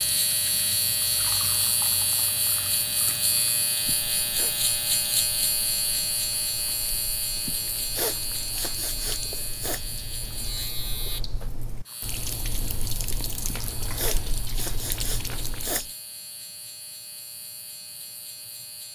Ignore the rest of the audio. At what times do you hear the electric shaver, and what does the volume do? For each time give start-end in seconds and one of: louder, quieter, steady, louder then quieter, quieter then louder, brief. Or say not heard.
0.0-18.9 quieter.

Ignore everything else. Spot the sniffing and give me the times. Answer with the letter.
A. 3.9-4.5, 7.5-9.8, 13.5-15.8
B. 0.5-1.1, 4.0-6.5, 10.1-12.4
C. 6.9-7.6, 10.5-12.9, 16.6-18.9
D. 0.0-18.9
A.